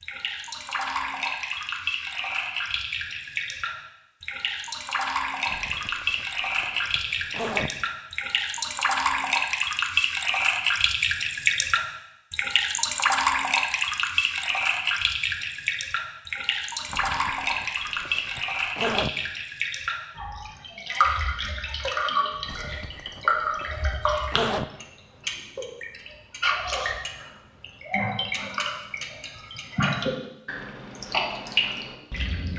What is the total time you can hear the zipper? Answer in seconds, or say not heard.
7 s.